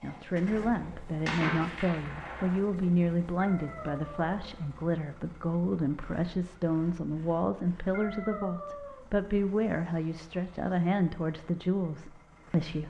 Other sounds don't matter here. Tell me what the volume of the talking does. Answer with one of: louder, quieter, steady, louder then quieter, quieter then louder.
steady.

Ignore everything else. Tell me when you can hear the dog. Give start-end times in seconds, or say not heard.
3.4-4.3, 7.9-9.1.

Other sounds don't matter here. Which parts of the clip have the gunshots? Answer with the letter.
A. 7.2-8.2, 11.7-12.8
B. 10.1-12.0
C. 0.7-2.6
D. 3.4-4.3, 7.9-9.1
C.